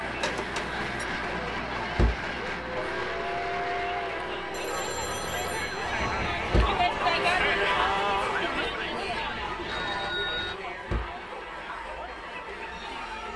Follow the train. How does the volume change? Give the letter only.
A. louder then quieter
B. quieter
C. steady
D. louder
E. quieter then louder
B.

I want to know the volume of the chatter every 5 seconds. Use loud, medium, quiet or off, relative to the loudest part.
medium, loud, medium.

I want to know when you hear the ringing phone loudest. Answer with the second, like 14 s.
10 s.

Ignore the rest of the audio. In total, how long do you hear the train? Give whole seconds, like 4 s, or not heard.
13 s.